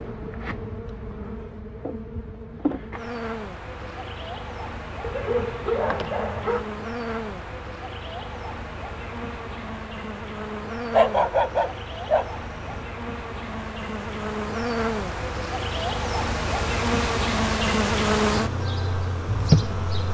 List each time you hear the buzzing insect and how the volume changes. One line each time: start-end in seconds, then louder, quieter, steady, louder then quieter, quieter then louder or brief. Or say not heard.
0.0-20.0 louder.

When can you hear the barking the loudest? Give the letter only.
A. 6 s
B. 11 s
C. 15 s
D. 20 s
B.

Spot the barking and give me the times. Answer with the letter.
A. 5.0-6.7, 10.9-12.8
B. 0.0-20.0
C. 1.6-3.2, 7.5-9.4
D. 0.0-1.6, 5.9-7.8
A.